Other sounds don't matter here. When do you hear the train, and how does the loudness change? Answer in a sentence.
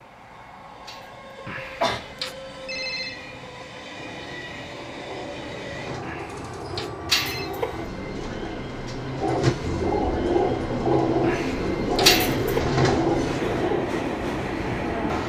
You can hear the train from 0.0 to 15.2 s, getting louder.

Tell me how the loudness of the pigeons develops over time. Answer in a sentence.
The volume of the pigeons goes up.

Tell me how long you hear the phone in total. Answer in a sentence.
The phone can be heard for 4 seconds in total.